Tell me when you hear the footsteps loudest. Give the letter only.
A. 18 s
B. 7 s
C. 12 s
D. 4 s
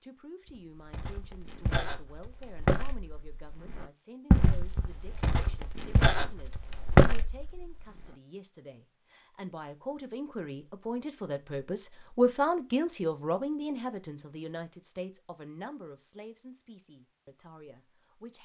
B.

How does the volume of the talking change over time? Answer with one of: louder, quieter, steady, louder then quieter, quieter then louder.
louder then quieter.